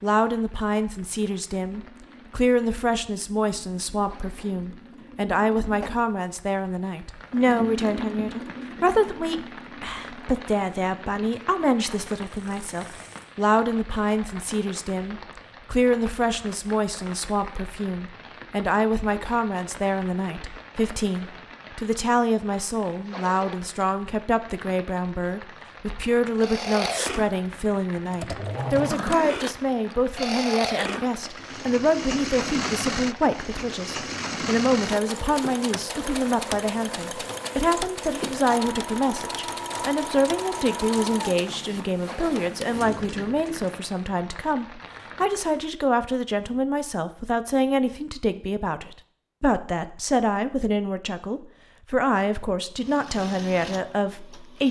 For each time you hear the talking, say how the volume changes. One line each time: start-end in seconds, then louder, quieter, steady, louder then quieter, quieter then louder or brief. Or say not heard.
0.0-54.6 steady.